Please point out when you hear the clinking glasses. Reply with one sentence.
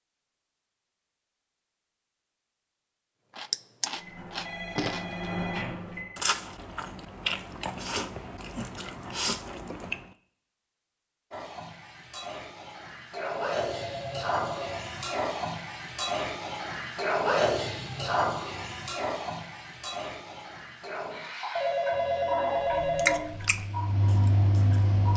You can't hear the clinking glasses here.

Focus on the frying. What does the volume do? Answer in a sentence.
The loudness of the frying goes up, then down.